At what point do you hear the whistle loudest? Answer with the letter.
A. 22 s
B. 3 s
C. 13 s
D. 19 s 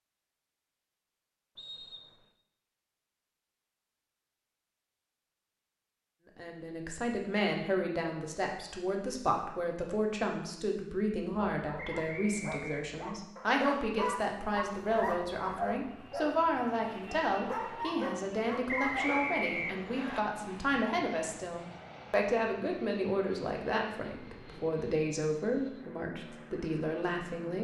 D.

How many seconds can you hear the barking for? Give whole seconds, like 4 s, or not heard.
8 s.